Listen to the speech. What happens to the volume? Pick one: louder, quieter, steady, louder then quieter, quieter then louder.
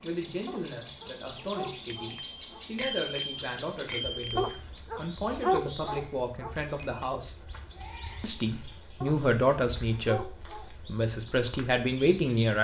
louder.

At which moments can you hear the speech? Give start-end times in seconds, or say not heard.
0.0-7.3, 8.2-12.5.